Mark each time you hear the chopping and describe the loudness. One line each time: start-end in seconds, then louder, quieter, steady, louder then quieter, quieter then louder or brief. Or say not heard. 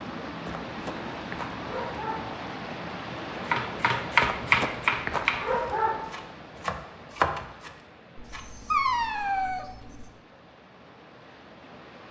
3.3-8.4 quieter then louder.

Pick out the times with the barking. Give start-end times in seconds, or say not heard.
0.5-2.4, 4.2-6.2, 8.2-10.1.